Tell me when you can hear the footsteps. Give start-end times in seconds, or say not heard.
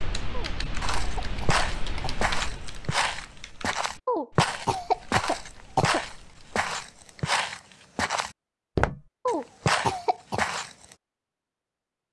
0.8-10.9.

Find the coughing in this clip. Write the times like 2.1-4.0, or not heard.
0.3-2.3, 4.0-6.0, 9.2-10.4.